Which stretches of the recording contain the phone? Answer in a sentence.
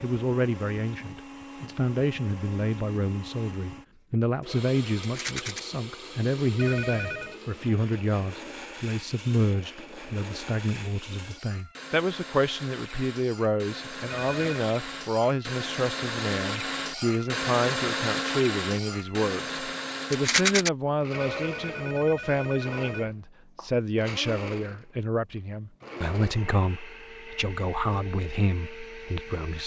You can hear the phone from 6.5 to 7.4 s, from 14.1 to 14.7 s and from 21.1 to 23.1 s.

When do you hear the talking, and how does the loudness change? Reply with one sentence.
The talking can be heard from 0.0 to 29.6 s, at a steady volume.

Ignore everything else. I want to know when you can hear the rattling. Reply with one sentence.
You can hear the rattling from 5.0 to 5.6 s and from 20.1 to 20.7 s.